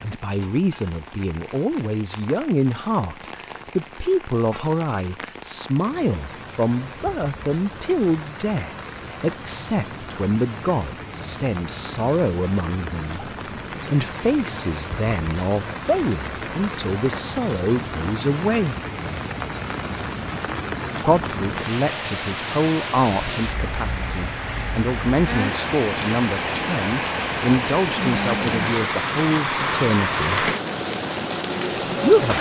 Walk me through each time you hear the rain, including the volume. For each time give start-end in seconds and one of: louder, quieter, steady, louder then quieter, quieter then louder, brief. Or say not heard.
0.0-32.3 louder.